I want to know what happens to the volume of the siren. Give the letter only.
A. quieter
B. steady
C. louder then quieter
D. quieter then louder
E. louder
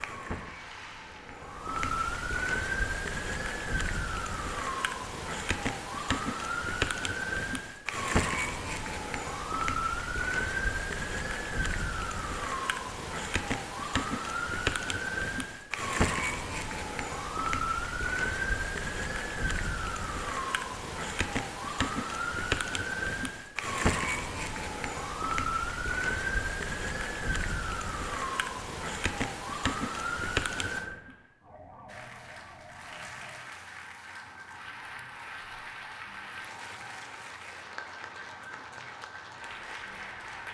A.